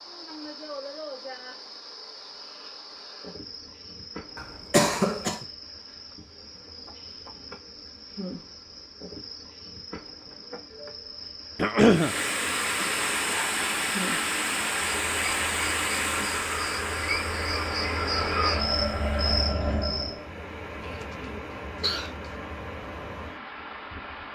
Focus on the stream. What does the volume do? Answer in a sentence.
The volume of the stream goes down.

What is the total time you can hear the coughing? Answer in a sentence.
You can hear the coughing for 3 seconds altogether.